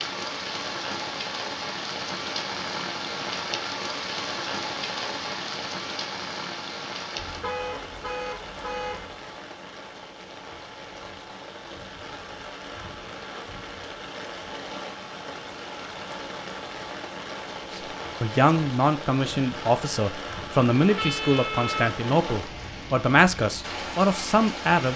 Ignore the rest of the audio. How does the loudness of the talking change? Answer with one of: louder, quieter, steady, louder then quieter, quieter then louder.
steady.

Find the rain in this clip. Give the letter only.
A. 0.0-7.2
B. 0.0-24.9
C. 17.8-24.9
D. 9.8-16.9
B.